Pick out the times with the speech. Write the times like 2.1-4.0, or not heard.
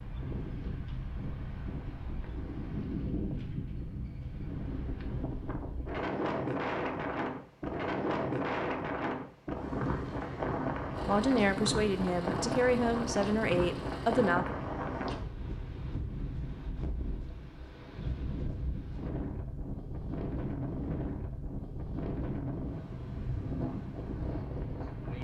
11.1-14.6.